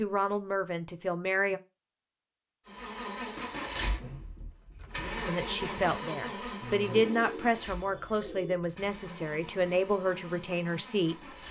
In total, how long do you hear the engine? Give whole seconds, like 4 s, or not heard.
9 s.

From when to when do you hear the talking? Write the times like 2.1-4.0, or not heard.
0.0-1.6, 5.2-11.2.